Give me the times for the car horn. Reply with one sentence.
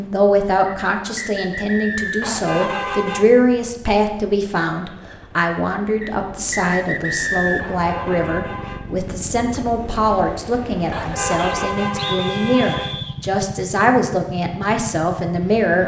The car horn can be heard from 2.2 to 3.2 s, from 7.5 to 8.8 s and from 10.9 to 13.0 s.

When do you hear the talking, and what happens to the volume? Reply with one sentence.
The talking can be heard from 0.0 to 15.8 s, at a steady volume.